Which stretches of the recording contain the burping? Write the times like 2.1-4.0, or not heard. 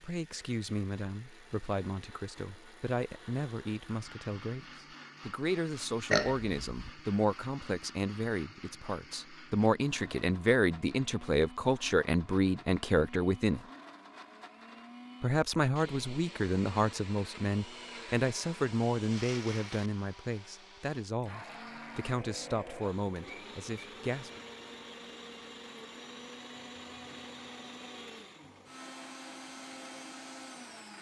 6.1-6.9.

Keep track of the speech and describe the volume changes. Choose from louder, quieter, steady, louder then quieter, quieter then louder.
louder then quieter.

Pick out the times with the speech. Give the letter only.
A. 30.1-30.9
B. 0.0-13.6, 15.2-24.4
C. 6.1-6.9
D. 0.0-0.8
B.